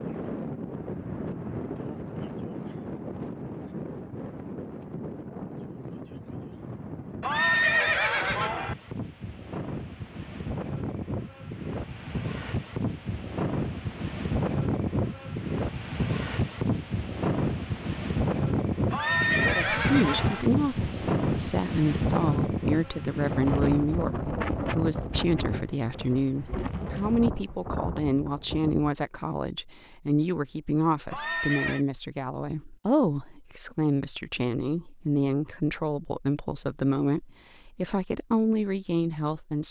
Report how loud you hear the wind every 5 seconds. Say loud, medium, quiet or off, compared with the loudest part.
medium, medium, loud, loud, loud, medium, off, off.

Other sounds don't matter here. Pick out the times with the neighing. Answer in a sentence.
The neighing can be heard from 7.2 to 8.8 s, from 18.9 to 20.4 s and from 31.1 to 31.9 s.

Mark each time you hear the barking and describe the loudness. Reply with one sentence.
You can't hear the barking here.